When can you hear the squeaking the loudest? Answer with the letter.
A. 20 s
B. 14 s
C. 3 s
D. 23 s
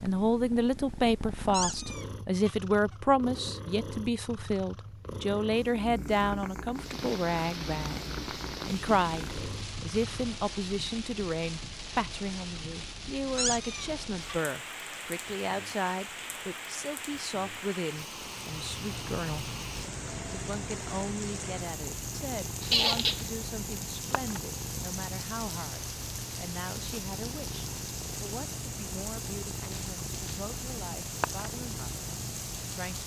D.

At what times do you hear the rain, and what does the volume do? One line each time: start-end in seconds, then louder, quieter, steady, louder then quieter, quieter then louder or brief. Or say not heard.
6.7-33.0 steady.